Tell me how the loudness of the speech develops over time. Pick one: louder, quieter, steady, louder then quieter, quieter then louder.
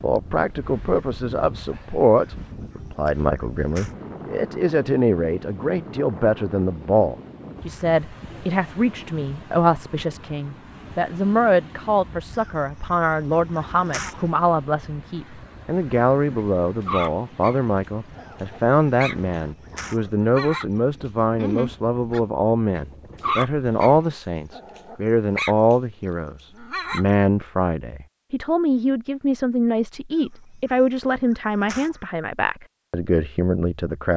steady.